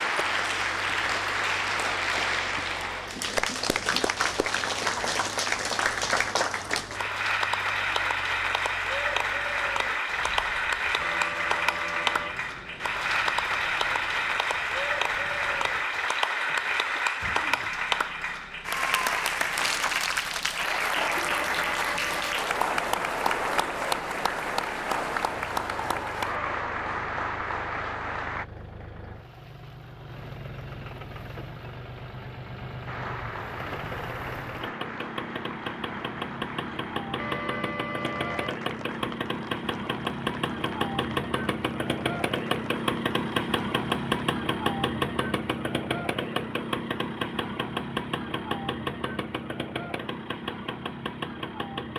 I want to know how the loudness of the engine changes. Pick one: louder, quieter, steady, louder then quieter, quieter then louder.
louder.